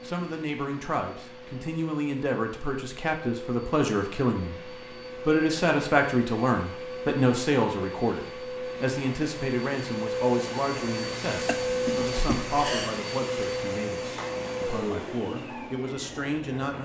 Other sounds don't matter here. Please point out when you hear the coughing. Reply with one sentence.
You can hear the coughing from 11.4 to 12.9 s.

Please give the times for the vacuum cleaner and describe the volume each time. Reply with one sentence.
The vacuum cleaner can be heard from 0.0 to 16.8 s, getting louder.